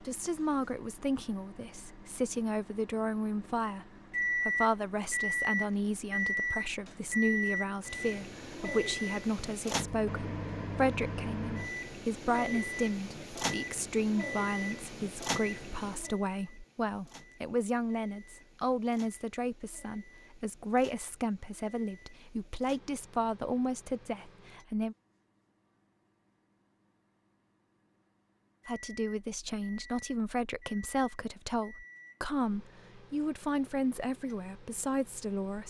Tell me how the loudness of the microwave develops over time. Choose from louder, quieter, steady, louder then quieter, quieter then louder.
quieter then louder.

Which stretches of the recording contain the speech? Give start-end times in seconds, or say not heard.
0.0-24.9, 28.6-35.6.